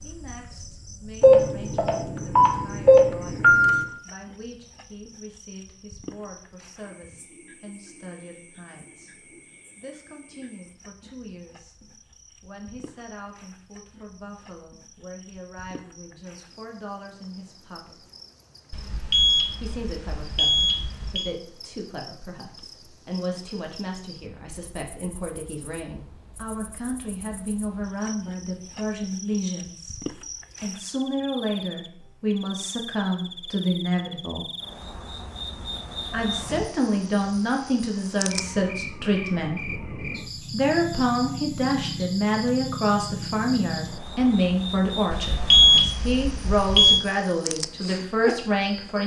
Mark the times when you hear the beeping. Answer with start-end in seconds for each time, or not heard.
1.2-3.9, 18.7-21.3, 45.1-47.0.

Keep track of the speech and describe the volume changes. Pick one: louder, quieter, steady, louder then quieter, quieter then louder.
louder.